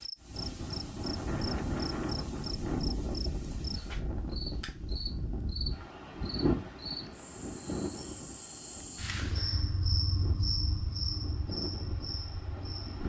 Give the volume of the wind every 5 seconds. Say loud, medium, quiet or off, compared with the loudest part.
loud, loud, medium.